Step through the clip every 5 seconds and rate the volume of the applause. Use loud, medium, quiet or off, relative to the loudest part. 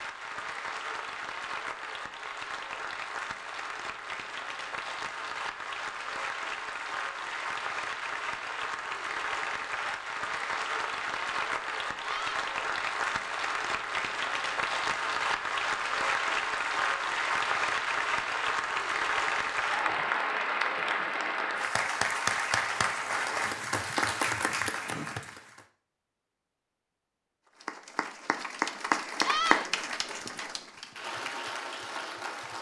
medium, medium, loud, loud, loud, loud, medium.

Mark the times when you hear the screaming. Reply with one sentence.
The screaming can be heard from 12.0 to 12.4 s and from 29.2 to 29.7 s.